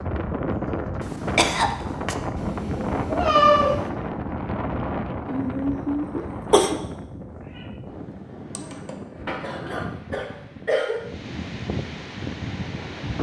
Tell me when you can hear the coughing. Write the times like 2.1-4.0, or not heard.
1.0-2.1, 5.2-6.8, 9.2-11.0.